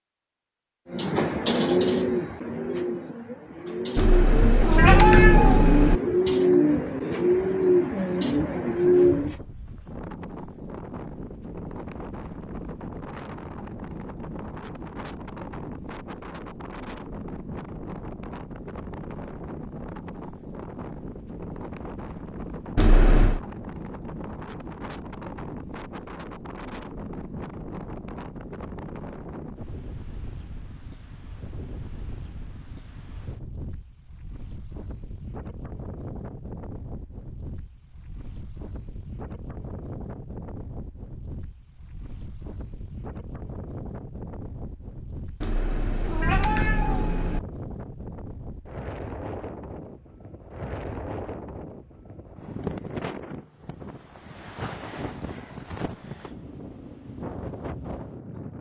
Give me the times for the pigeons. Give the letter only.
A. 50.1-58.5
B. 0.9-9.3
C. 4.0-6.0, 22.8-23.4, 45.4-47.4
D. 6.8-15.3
B.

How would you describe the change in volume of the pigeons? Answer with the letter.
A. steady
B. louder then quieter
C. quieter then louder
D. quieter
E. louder
C.